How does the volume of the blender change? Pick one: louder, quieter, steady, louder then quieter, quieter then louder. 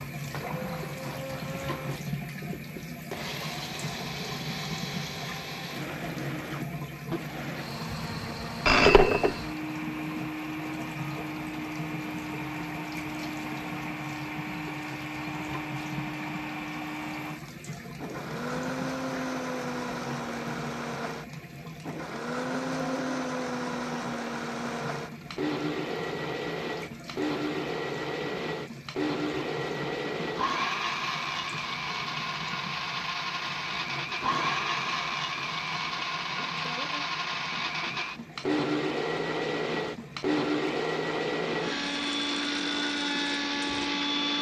louder.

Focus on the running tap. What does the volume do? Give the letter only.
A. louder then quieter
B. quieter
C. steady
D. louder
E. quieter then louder
B.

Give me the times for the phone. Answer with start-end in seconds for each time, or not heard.
8.1-9.4.